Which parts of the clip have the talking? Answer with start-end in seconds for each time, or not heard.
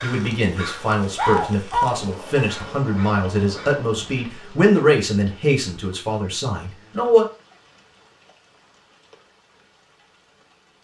0.0-7.2.